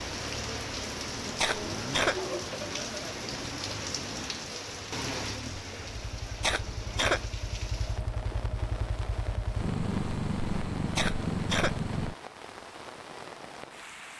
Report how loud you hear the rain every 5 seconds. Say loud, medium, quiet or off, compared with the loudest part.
loud, medium, medium.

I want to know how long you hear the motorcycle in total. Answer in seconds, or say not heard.
12 s.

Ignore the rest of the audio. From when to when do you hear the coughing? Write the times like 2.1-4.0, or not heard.
1.4-2.2, 6.4-7.2, 10.9-11.8.